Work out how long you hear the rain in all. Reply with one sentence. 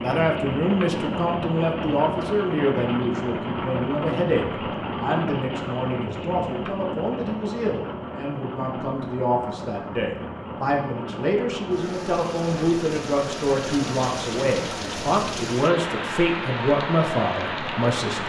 You can hear the rain for 18 seconds altogether.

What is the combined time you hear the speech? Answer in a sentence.
The speech can be heard for 18 seconds in total.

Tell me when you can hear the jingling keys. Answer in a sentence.
You can't hear the jingling keys here.